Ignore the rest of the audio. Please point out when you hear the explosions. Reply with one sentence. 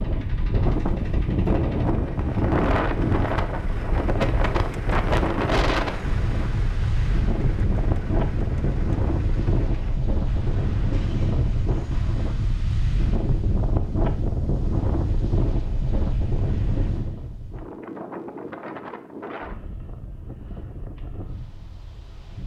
The explosions can't be heard in this clip.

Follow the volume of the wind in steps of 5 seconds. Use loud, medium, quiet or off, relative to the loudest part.
loud, loud, loud, medium, quiet.